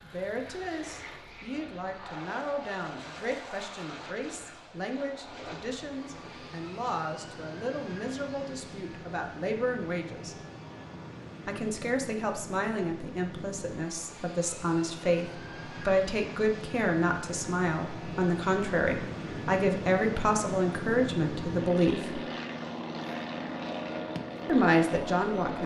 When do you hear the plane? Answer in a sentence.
The plane can be heard from 0.0 to 25.6 s.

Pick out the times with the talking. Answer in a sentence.
You can hear the talking from 0.0 to 10.3 s, from 11.4 to 22.2 s and from 24.4 to 25.6 s.